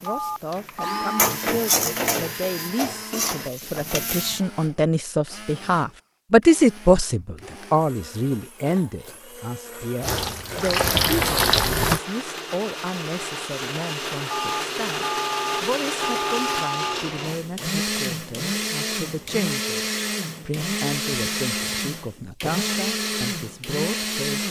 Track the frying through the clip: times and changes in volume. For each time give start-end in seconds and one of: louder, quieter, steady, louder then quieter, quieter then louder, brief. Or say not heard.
0.0-4.4 louder then quieter
10.0-12.0 brief.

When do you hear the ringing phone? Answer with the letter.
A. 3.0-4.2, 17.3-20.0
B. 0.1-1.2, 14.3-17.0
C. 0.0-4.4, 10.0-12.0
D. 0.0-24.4
B.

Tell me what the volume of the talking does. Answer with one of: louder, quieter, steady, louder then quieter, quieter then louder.
louder then quieter.